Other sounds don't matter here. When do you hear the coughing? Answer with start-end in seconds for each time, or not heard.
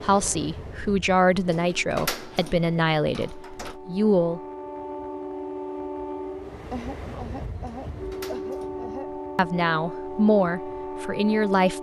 6.7-9.1.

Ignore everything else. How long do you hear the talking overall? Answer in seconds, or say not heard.
7 s.